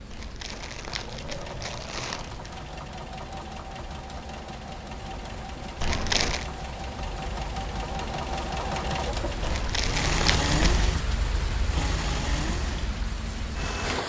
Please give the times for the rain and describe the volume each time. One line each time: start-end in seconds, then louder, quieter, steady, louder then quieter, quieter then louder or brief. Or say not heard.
0.0-14.0 louder.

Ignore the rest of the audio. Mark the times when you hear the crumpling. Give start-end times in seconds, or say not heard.
0.1-2.5, 5.8-6.5, 9.4-10.9.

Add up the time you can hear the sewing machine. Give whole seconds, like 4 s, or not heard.
14 s.